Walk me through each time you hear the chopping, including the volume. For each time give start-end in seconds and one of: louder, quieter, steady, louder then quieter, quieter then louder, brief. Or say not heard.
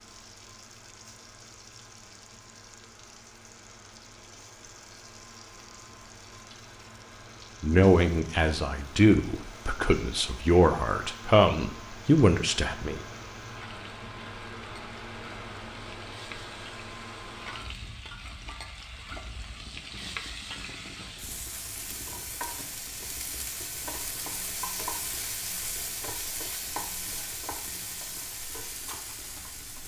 not heard.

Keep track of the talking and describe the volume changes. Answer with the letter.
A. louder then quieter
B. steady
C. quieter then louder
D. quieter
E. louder
E.